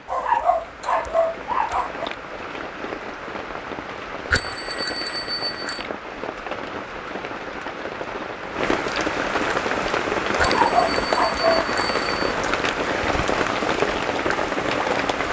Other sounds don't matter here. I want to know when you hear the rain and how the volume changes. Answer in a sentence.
The rain can be heard from 0.0 to 15.2 s, getting louder.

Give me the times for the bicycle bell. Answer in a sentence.
The bicycle bell can be heard from 4.3 to 5.8 s and from 10.3 to 12.3 s.